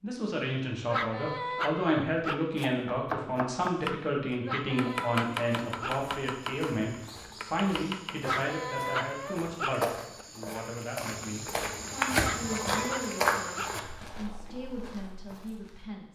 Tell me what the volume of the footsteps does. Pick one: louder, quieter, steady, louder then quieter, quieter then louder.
louder then quieter.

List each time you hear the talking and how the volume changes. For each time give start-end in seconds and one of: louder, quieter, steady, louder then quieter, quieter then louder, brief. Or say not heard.
0.0-16.1 quieter.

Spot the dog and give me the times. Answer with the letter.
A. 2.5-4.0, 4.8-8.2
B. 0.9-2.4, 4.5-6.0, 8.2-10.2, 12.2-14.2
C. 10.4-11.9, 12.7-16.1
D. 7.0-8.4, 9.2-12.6
B.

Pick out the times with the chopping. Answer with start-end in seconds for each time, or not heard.
2.5-4.0, 4.8-8.2.